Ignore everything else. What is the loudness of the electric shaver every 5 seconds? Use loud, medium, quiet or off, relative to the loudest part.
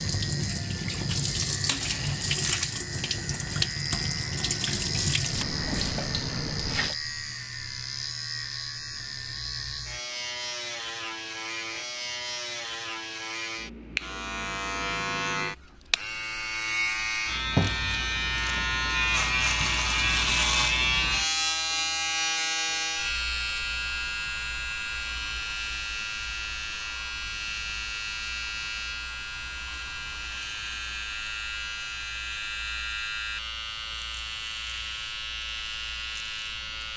medium, medium, medium, loud, loud, medium, medium, medium.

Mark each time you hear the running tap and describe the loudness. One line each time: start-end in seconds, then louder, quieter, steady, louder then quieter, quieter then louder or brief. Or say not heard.
0.0-7.0 steady.